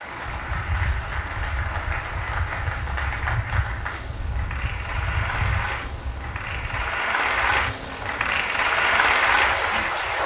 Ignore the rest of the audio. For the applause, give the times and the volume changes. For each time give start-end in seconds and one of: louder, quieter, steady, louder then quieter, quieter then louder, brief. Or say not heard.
0.0-10.2 louder.